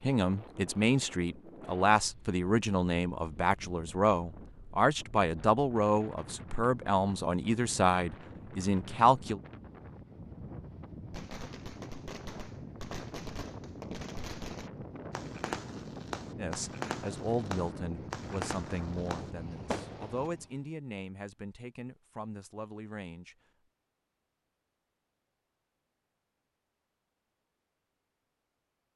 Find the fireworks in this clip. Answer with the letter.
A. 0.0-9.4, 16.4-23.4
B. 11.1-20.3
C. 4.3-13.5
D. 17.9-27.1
B.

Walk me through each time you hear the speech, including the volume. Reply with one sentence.
You can hear the speech from 0.0 to 9.4 s, at a steady volume; and from 16.4 to 23.4 s, getting quieter.